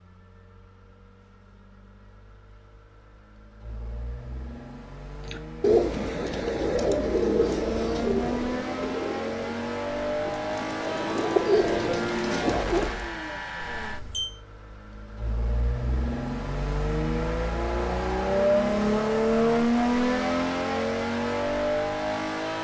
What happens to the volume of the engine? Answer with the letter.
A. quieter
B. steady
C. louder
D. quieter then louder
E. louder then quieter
C.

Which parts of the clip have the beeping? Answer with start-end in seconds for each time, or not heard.
13.6-14.3.